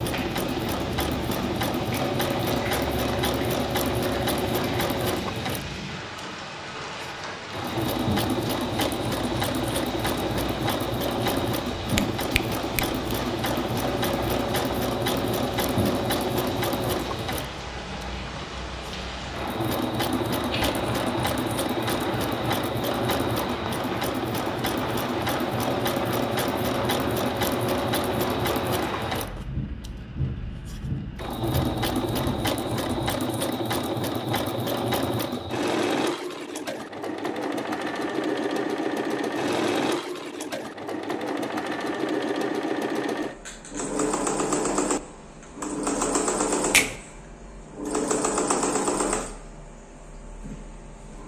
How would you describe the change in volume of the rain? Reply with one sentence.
The loudness of the rain stays about the same.